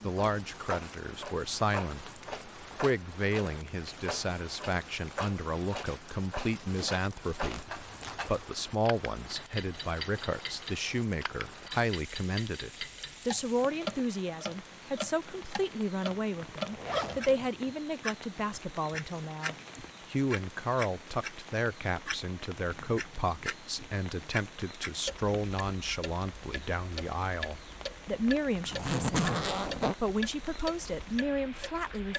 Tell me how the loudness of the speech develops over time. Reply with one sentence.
The volume of the speech stays about the same.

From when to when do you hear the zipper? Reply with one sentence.
The zipper can be heard from 6.8 to 8.4 s, from 16.4 to 17.5 s and from 28.7 to 29.9 s.